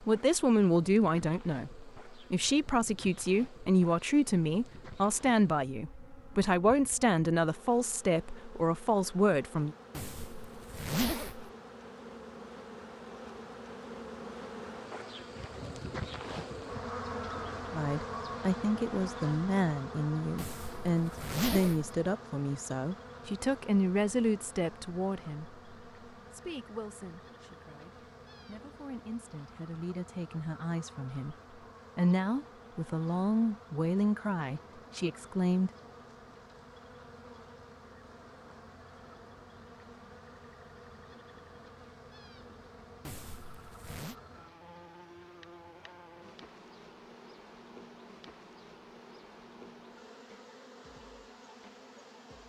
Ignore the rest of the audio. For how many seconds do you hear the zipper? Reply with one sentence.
The zipper can be heard for 4 seconds in total.